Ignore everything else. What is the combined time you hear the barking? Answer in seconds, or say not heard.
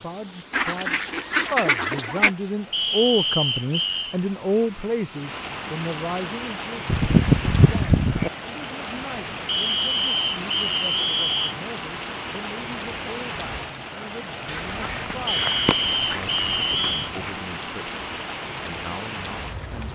not heard.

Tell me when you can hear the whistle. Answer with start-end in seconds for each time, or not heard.
2.7-4.2, 9.4-11.6, 15.2-17.1.